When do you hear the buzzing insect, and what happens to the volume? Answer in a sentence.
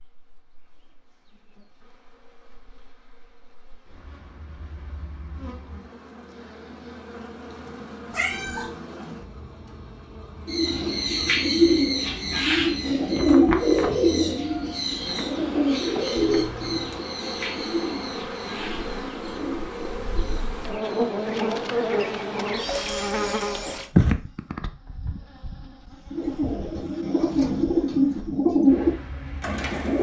The buzzing insect can be heard from 0.0 to 29.6 s, getting louder.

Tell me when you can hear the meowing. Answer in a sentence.
The meowing can be heard from 8.1 to 8.8 s and from 16.1 to 17.0 s.